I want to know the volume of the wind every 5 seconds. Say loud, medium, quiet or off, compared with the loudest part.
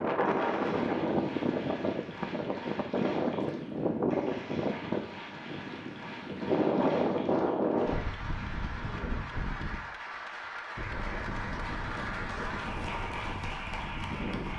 loud, loud, medium.